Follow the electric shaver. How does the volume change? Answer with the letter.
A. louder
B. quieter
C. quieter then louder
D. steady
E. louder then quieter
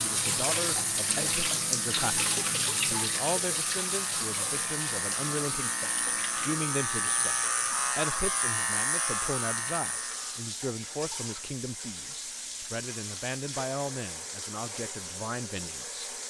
A.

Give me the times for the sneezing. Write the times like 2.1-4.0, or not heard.
not heard.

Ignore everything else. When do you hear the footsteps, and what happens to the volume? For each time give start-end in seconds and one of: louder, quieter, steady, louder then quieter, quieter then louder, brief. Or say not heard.
not heard.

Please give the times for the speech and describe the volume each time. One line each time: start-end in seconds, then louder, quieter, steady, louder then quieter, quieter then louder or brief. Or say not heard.
0.0-16.1 steady.